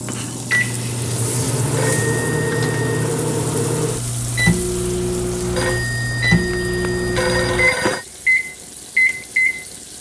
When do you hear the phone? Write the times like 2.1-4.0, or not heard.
1.8-3.1, 5.5-8.1.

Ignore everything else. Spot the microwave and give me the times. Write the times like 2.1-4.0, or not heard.
0.0-9.7.